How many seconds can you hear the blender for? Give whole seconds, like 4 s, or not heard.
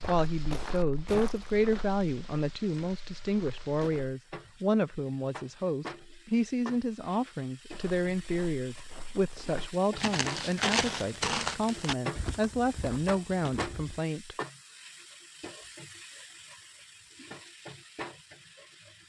not heard.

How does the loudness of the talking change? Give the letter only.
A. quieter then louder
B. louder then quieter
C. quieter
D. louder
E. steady
E.